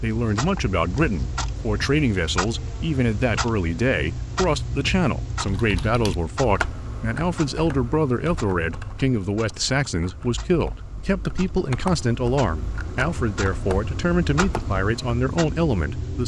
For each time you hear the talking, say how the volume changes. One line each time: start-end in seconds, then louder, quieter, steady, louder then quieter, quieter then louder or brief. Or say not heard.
0.0-16.2 steady.